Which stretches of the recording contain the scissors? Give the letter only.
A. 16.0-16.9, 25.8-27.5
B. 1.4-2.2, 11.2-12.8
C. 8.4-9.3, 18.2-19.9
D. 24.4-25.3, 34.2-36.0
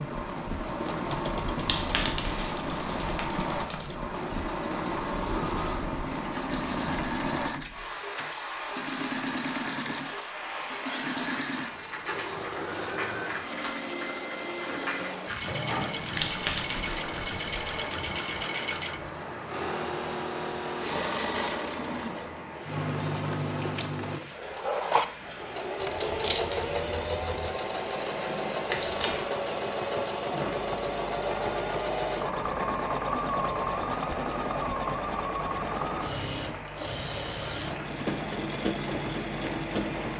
A.